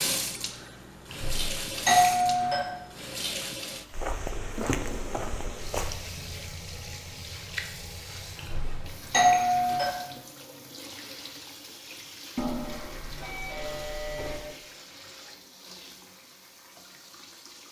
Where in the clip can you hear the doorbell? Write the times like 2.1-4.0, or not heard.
1.1-2.6, 8.3-9.9, 12.3-14.4.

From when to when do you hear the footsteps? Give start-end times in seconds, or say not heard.
3.9-6.0.